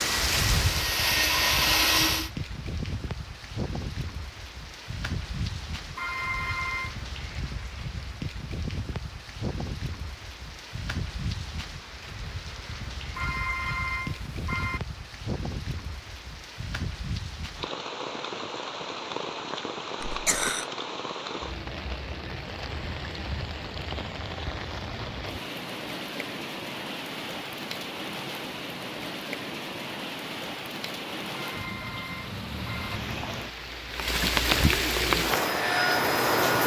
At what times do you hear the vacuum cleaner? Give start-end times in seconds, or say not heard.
0.0-2.3, 34.9-36.6.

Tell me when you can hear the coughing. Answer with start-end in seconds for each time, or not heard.
20.0-20.6.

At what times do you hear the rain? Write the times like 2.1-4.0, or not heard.
0.0-36.6.